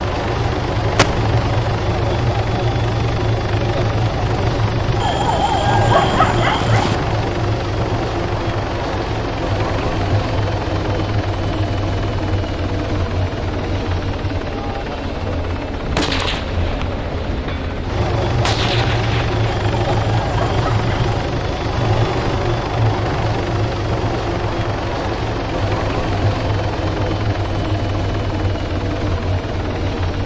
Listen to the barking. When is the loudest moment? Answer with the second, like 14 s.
6 s.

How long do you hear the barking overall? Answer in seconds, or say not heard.
4 s.